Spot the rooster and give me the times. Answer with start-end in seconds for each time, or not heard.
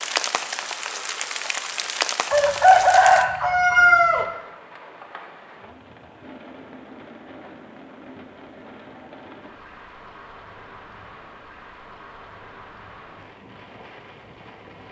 2.3-4.2.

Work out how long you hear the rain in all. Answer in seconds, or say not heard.
15 s.